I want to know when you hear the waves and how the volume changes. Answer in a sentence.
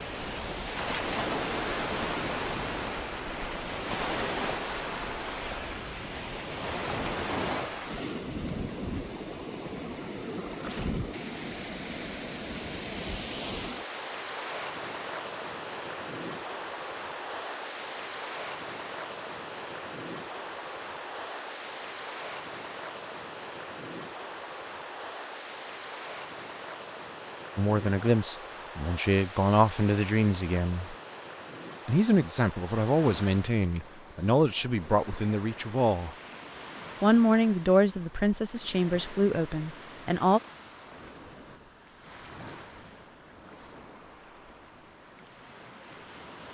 You can hear the waves from 0.0 to 46.5 s, getting quieter.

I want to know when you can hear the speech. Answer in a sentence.
The speech can be heard from 27.6 to 30.9 s, from 31.9 to 36.1 s and from 37.0 to 40.4 s.